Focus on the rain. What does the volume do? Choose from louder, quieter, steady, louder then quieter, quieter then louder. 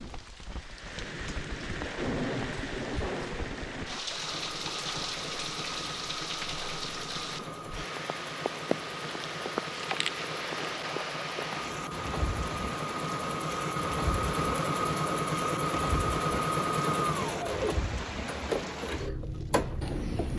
steady.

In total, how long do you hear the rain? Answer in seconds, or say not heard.
20 s.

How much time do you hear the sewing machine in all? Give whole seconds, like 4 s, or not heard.
16 s.